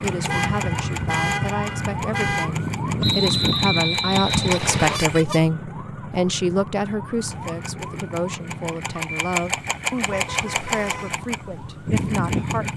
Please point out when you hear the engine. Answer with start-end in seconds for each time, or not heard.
0.0-5.2, 7.3-12.7.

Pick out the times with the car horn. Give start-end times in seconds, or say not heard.
0.2-2.5, 4.8-5.4, 10.1-11.2.